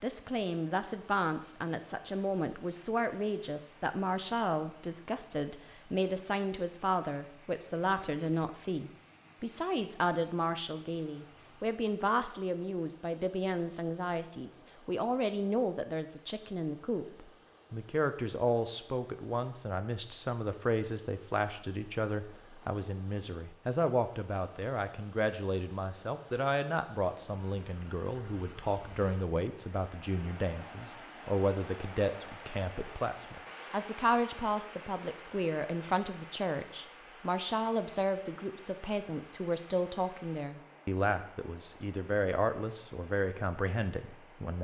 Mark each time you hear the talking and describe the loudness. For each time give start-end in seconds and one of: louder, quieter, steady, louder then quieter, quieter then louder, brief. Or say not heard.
0.0-44.5 steady.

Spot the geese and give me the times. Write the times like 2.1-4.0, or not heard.
not heard.